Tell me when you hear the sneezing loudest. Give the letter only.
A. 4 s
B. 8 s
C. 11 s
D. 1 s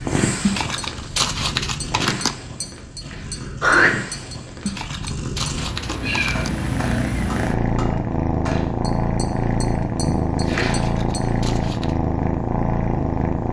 A.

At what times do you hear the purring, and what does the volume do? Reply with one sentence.
The purring can be heard from 0.0 to 13.4 s, getting louder.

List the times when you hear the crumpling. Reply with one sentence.
You can hear the crumpling from 0.5 to 2.4 s, from 4.7 to 6.5 s and from 10.7 to 11.9 s.